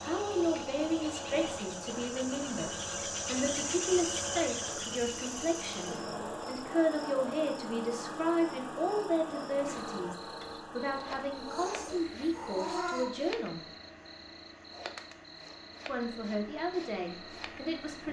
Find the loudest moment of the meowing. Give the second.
13 s.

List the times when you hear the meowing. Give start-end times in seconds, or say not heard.
11.3-13.1.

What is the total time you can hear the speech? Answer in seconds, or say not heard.
16 s.